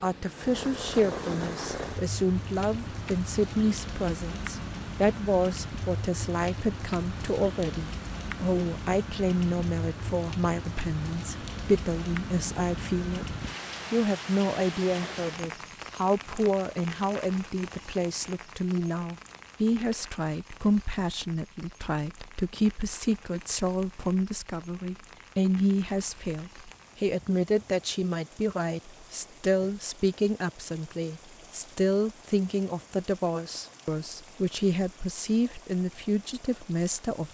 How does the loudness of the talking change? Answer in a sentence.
The loudness of the talking stays about the same.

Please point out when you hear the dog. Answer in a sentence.
The dog can't be heard in this clip.